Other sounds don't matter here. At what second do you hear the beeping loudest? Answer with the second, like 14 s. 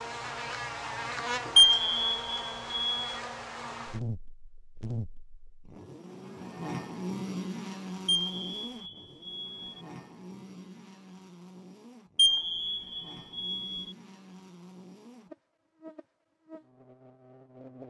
2 s.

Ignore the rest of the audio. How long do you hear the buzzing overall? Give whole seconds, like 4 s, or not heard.
18 s.